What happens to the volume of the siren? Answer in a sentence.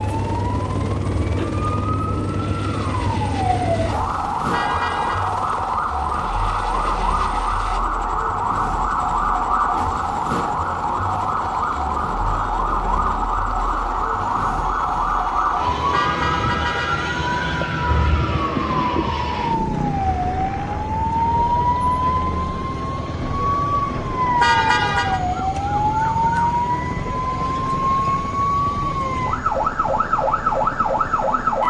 The loudness of the siren stays about the same.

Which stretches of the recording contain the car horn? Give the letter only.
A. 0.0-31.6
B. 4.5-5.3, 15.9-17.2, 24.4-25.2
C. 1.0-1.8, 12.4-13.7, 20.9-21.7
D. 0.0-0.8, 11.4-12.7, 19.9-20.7
B.